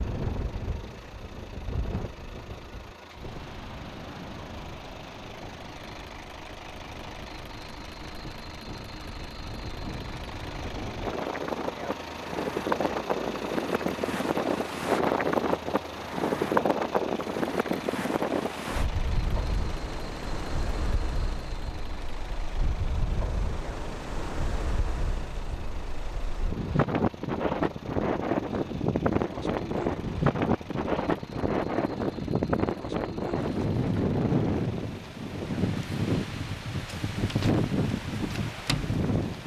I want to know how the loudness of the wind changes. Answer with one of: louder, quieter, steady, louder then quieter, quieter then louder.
louder.